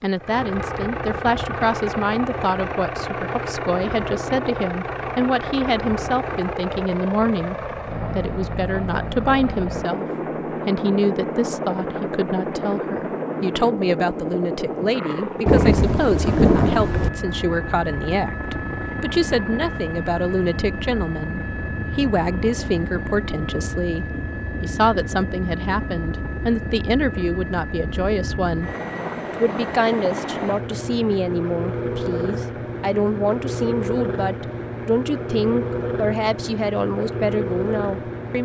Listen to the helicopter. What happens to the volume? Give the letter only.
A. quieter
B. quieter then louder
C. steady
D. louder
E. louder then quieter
C.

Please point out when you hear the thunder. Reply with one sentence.
You can hear the thunder from 15.4 to 17.1 s.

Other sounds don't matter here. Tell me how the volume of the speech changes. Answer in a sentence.
The loudness of the speech stays about the same.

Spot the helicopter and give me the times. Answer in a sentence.
The helicopter can be heard from 0.1 to 38.3 s.